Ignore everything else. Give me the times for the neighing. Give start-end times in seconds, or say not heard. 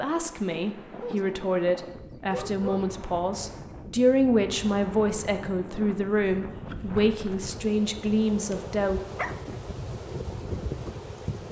not heard.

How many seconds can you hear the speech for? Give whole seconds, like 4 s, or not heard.
9 s.